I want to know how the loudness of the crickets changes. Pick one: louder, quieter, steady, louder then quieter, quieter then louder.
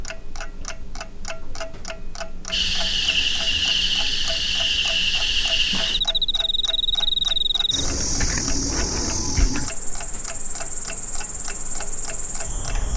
quieter.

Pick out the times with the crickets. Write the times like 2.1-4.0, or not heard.
2.5-12.9.